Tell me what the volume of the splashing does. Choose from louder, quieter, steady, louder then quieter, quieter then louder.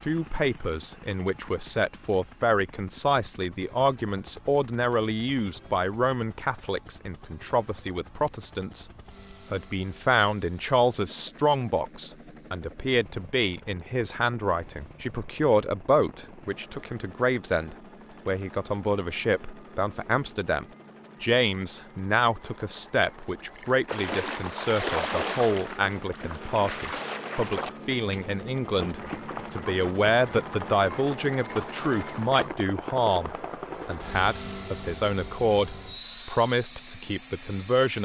quieter.